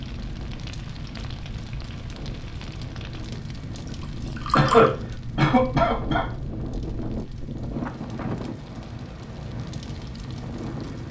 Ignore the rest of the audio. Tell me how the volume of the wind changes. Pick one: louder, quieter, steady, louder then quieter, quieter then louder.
louder then quieter.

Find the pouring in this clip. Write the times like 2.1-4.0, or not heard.
4.0-4.9.